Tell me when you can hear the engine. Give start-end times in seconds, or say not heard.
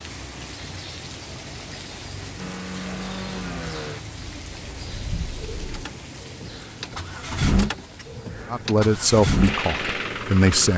2.4-10.7.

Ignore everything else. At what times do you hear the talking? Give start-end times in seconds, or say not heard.
8.5-10.7.